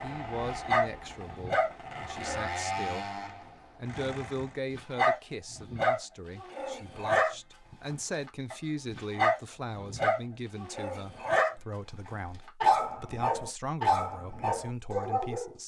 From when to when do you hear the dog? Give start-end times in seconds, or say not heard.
0.0-2.5, 4.7-15.6.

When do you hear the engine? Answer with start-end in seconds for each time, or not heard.
0.0-4.6.